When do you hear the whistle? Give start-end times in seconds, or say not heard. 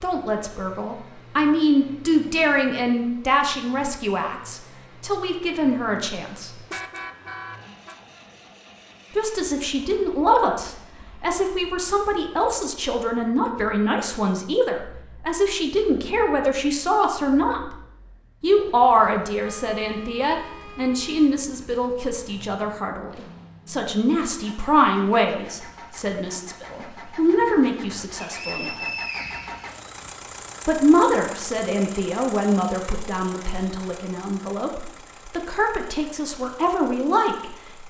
28.2-29.7.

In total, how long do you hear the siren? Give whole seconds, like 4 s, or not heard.
not heard.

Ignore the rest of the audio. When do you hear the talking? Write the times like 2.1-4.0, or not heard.
0.0-6.5, 9.2-17.7, 18.4-28.9, 30.6-37.8.